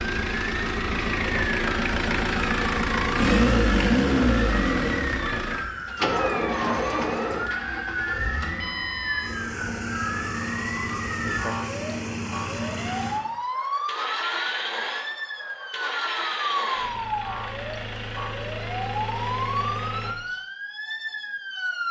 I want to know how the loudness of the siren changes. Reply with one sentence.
The loudness of the siren stays about the same.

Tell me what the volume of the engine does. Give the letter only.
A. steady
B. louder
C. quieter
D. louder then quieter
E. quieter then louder
C.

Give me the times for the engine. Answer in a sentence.
The engine can be heard from 0.0 to 20.1 s.